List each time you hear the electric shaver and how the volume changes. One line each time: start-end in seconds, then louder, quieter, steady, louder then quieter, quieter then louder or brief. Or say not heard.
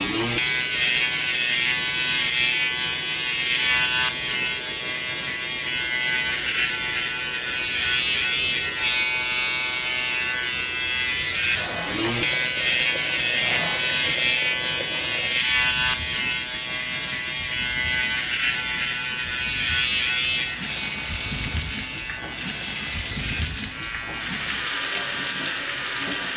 0.0-26.3 quieter.